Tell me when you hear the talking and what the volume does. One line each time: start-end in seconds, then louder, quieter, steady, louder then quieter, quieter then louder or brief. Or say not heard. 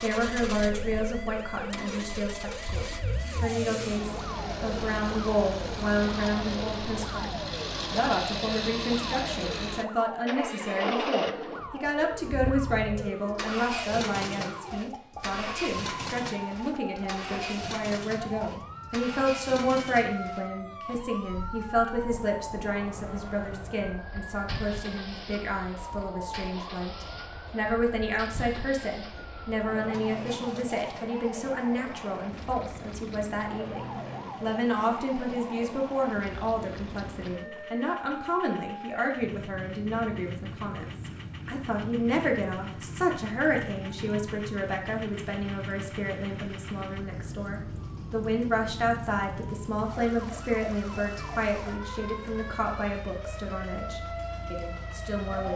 0.0-55.5 steady.